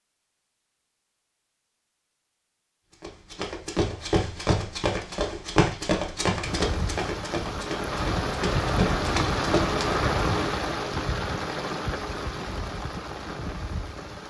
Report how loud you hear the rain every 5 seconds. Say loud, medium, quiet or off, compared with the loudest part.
off, loud, loud.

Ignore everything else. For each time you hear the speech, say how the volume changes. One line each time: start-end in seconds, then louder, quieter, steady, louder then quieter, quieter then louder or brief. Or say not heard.
not heard.